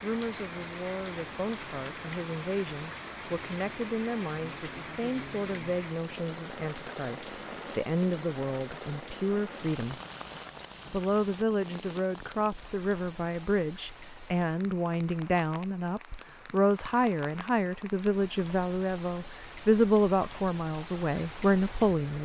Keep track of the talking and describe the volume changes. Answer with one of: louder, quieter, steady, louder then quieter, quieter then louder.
louder.